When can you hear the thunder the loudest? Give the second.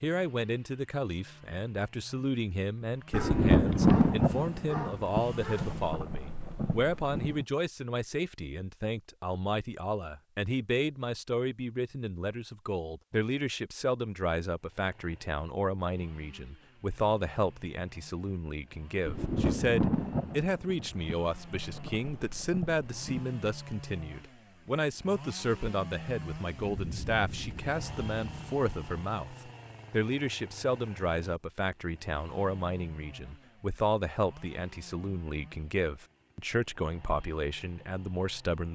4 s.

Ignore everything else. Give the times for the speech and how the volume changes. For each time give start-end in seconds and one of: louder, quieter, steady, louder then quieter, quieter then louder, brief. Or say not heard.
0.0-38.7 steady.